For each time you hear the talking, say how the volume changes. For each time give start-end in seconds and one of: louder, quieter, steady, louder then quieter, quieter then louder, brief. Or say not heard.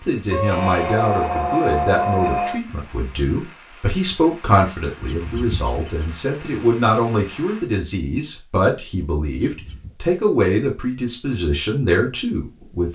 0.0-12.8 steady.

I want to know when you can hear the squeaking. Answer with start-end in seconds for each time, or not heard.
0.3-2.6, 5.0-6.1, 9.4-10.0.